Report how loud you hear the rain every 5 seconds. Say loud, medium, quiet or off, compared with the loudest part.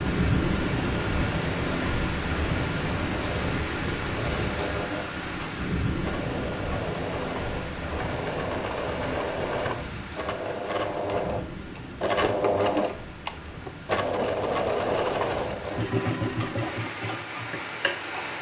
loud, medium, quiet, medium.